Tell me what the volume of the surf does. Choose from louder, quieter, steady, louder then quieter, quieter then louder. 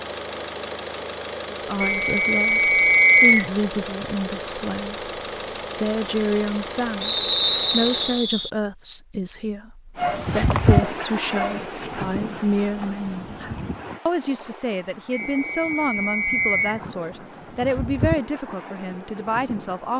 quieter then louder.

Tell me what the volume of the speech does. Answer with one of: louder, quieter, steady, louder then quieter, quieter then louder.
steady.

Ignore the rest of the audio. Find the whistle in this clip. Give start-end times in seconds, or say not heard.
1.8-3.5, 7.0-8.5, 15.1-16.8.